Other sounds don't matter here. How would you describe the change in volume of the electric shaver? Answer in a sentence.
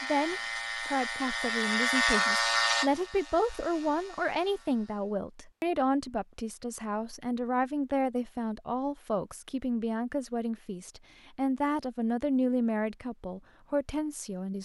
The volume of the electric shaver goes up, then down.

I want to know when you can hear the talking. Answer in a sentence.
You can hear the talking from 0.0 to 14.6 s.